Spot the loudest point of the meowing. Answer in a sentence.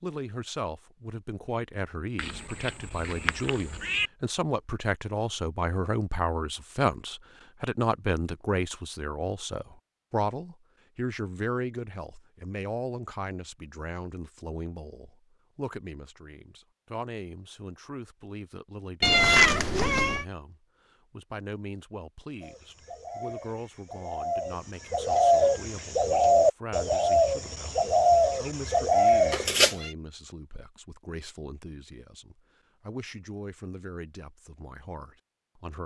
The loudest moment of the meowing is at 19 seconds.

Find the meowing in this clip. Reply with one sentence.
The meowing can be heard from 2.1 to 4.1 s, from 19.0 to 20.2 s and from 29.3 to 29.9 s.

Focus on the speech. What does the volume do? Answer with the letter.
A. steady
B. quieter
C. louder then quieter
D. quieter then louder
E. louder
B.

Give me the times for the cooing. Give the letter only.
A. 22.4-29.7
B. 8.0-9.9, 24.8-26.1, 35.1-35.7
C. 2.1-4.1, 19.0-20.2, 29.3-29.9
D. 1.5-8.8
A.